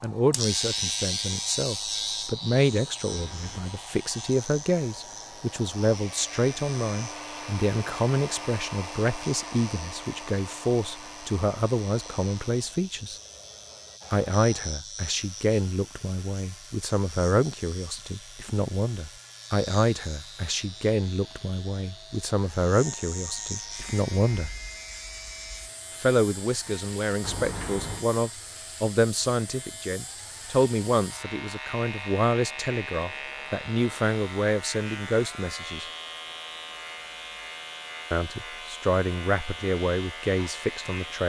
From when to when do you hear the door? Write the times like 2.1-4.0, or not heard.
3.1-3.8, 27.2-28.1.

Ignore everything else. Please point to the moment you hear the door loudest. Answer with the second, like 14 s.
28 s.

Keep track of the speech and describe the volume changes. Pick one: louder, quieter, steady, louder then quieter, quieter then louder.
steady.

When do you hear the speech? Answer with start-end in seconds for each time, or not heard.
0.0-13.2, 14.1-24.6, 25.9-35.9, 38.1-41.2.